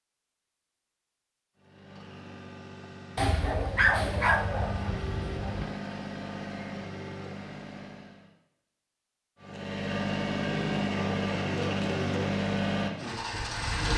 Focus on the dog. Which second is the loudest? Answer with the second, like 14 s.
4 s.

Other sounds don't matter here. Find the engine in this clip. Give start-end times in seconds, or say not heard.
1.6-8.3, 9.4-13.9.